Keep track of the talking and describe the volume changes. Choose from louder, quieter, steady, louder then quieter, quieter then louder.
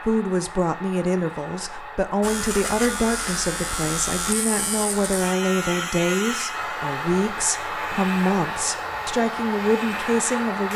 steady.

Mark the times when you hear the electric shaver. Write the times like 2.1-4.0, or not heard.
2.2-10.7.